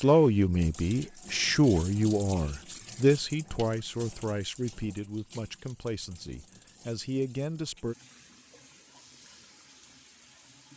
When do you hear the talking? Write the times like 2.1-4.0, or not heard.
0.0-8.0.